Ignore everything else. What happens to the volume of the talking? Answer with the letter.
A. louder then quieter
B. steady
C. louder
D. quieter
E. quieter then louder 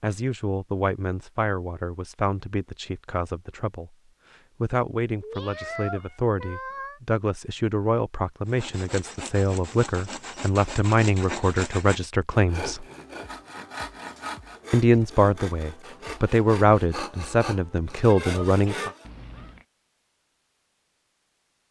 C.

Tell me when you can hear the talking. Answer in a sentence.
The talking can be heard from 0.0 to 4.0 s, from 4.6 to 12.8 s and from 14.7 to 18.9 s.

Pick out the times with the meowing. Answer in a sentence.
You can hear the meowing from 5.2 to 7.0 s and from 19.1 to 19.6 s.